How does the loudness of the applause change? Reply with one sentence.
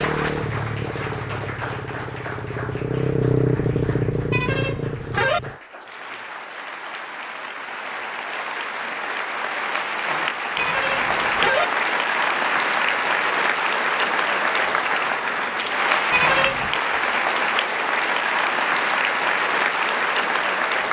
The volume of the applause goes up.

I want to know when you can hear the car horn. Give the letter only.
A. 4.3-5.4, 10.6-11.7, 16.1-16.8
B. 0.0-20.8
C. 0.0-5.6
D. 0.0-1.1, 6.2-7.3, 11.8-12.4
A.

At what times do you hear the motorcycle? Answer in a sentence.
The motorcycle can be heard from 0.0 to 5.6 s.